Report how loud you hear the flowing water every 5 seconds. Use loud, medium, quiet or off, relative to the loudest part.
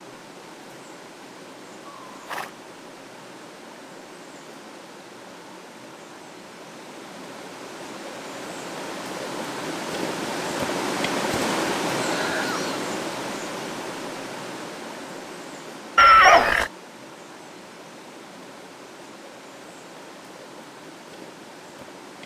quiet, medium, loud, quiet, quiet.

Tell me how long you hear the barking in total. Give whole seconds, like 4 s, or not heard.
not heard.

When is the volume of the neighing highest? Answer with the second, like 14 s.
16 s.